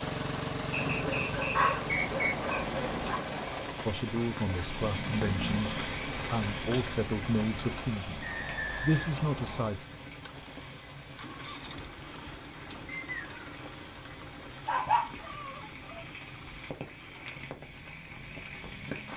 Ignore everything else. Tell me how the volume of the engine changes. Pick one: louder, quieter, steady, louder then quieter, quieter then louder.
quieter.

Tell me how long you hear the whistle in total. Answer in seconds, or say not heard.
4 s.